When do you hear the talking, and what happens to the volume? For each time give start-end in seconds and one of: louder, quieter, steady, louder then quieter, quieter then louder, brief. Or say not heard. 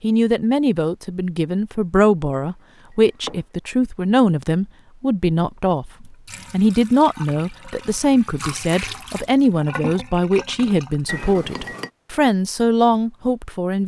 0.0-13.8 steady.